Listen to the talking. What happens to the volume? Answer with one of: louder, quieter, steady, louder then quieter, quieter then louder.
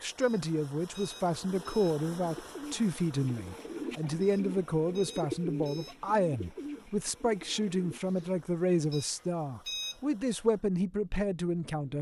steady.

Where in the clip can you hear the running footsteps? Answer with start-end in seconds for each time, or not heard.
not heard.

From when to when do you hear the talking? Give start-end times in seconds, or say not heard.
0.0-11.9.